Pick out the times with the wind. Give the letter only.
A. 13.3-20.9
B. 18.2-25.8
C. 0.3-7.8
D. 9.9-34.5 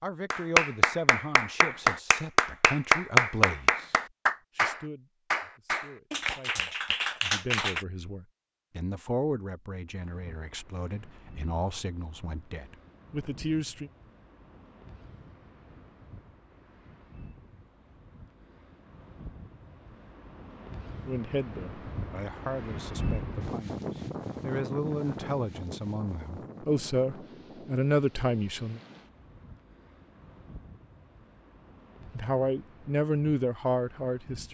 D.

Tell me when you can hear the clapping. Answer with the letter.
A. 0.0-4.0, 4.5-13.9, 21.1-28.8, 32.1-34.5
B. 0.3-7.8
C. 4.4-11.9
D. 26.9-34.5
B.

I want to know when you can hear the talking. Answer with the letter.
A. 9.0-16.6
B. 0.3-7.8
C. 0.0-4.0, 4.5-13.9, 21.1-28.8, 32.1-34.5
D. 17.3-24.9
C.